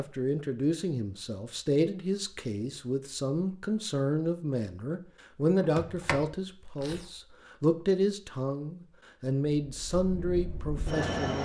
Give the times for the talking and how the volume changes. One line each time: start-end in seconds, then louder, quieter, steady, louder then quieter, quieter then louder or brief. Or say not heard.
0.0-11.3 steady.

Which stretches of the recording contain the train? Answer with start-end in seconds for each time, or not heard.
9.7-11.3.